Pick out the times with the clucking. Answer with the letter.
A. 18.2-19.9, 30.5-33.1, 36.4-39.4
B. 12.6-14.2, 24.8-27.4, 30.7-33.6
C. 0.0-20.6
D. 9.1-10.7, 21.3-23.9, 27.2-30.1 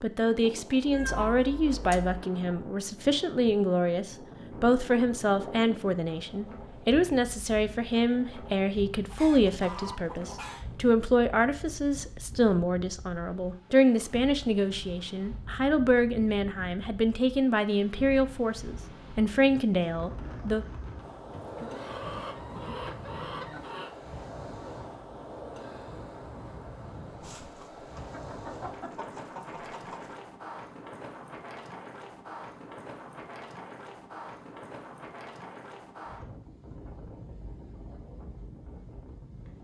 D.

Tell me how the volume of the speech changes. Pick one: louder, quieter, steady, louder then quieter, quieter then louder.
steady.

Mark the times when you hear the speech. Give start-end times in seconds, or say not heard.
0.0-20.6.